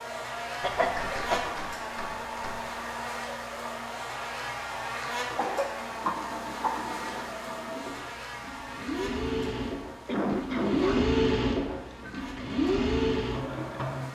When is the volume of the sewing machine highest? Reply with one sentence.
The volume of the sewing machine peaks at 11 seconds.